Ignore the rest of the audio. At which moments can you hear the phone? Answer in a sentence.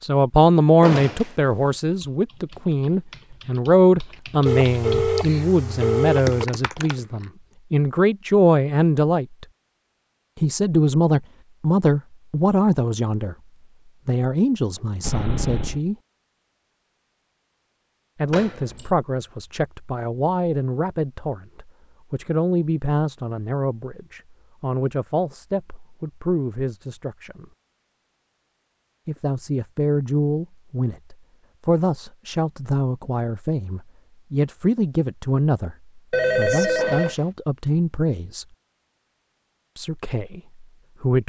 The phone can be heard from 4.5 to 6.5 s, from 15.0 to 15.8 s and from 36.1 to 37.1 s.